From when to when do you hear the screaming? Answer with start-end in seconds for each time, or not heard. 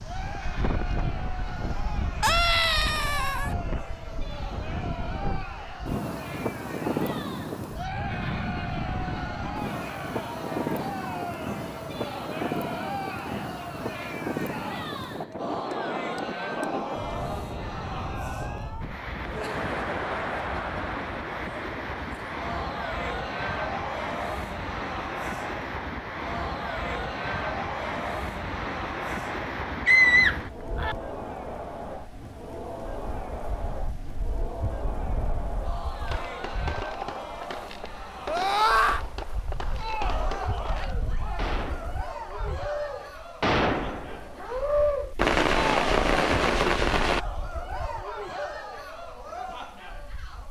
2.2-3.5, 29.9-30.9, 38.2-39.0.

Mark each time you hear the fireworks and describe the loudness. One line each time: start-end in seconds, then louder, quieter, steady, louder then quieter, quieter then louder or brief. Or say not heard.
36.0-47.2 louder.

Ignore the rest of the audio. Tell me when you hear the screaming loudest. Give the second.
30 s.